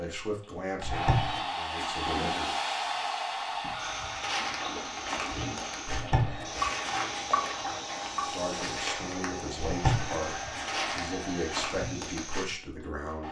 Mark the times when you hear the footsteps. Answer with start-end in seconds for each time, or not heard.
3.8-12.9.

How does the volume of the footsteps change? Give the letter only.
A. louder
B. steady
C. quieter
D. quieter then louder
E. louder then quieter
B.